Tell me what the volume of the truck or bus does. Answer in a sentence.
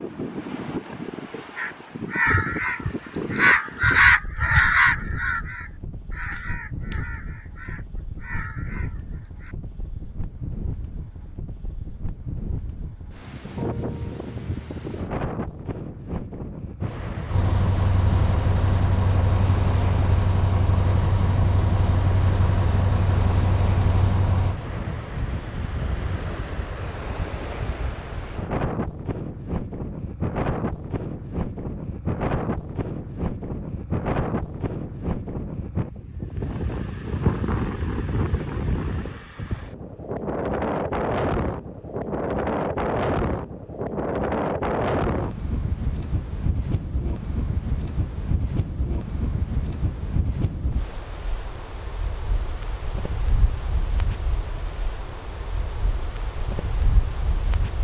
The loudness of the truck or bus stays about the same.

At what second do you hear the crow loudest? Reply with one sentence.
The volume of the crow peaks at 4 seconds.